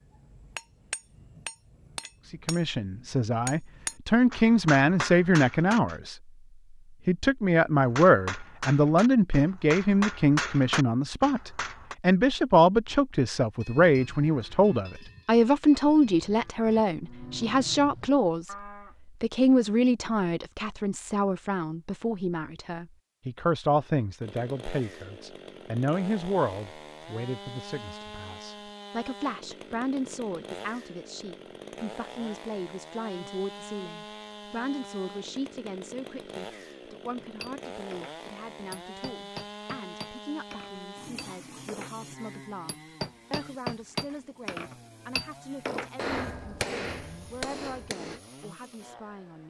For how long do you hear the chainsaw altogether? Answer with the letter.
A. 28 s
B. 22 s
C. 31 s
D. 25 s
D.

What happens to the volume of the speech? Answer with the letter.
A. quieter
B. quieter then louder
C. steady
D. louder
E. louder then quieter
A.